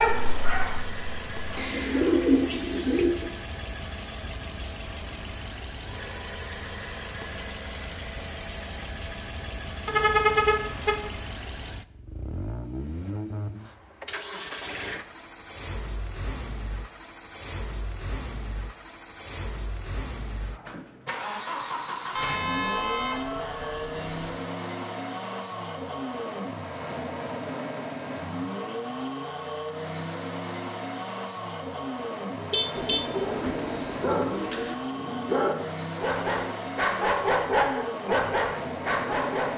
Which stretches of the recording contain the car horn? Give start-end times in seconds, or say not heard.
9.8-10.9, 22.1-24.2, 32.4-33.5.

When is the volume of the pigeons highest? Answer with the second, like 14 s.
2 s.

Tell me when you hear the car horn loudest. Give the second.
10 s.